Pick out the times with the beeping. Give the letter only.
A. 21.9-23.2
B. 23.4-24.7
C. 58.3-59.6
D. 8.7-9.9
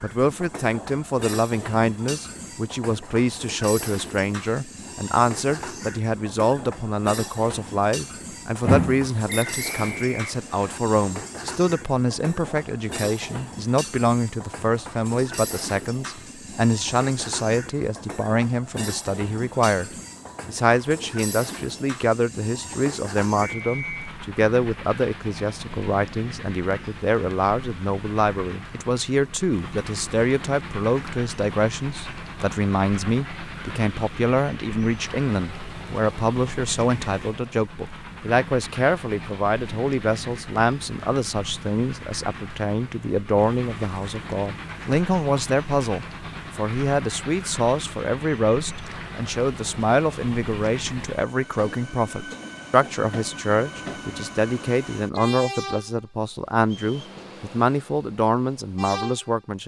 D.